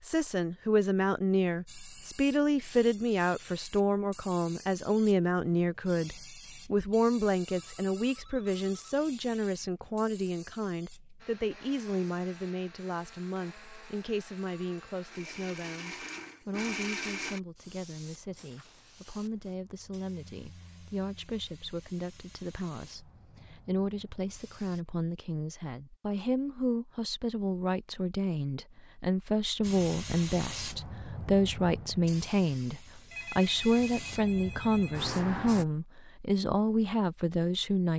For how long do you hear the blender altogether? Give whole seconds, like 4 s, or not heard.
6 s.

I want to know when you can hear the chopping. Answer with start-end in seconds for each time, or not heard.
not heard.